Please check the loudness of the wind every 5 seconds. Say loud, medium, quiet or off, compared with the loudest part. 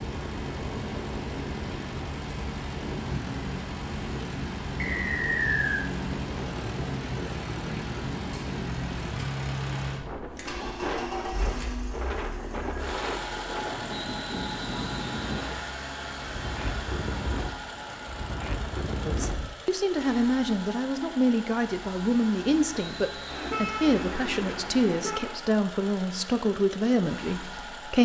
loud, loud, loud, loud, off, off.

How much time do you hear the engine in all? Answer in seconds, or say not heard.
28 s.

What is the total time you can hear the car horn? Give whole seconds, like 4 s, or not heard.
2 s.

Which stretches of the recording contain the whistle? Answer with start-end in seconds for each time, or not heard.
4.8-5.8, 13.9-15.6, 22.7-23.6.